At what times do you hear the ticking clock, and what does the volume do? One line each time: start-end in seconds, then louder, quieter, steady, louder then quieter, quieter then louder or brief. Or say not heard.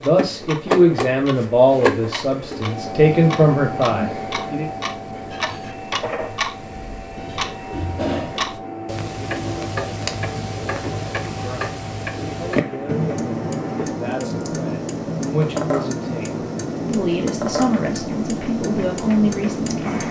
0.0-20.0 louder.